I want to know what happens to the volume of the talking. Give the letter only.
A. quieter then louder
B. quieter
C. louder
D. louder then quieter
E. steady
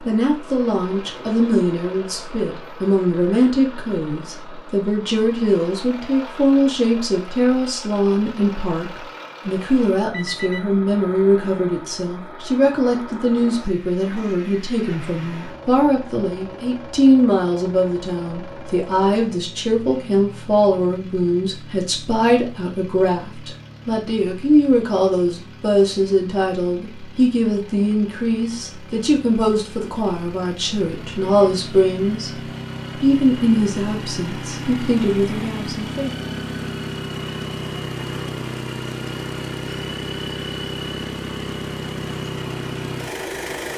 E.